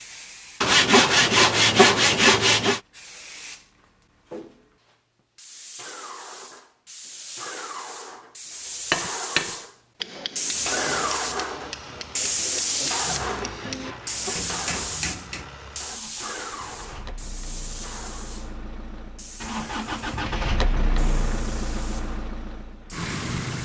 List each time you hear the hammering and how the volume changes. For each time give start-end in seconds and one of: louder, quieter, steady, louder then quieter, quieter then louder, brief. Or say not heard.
8.9-15.5 quieter then louder.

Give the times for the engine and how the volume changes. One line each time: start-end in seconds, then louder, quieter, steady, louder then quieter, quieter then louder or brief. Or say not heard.
10.5-23.6 louder.